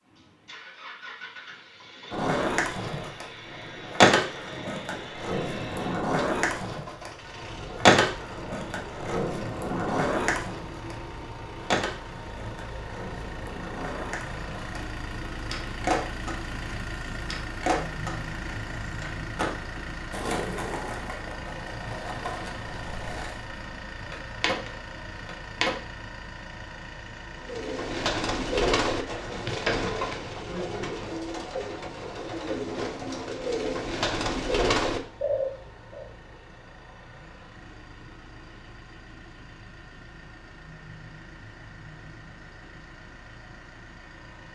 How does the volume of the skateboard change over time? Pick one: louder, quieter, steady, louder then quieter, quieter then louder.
quieter.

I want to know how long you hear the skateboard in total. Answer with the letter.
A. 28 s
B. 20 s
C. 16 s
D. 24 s
D.